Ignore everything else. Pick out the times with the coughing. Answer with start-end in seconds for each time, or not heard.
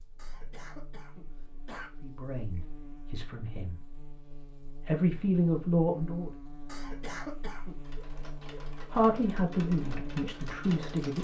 0.1-1.9, 6.7-7.8.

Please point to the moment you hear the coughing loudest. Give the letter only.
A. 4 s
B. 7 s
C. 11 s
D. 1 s
B.